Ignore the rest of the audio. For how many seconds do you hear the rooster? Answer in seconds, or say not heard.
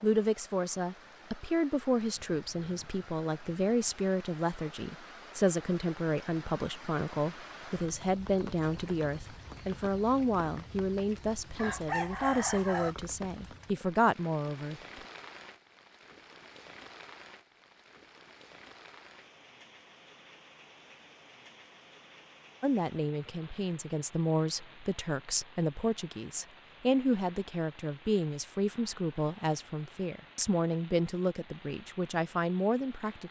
2 s.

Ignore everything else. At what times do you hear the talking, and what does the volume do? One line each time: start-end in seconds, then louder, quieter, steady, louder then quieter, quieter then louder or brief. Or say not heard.
0.0-14.8 steady
22.6-33.2 steady.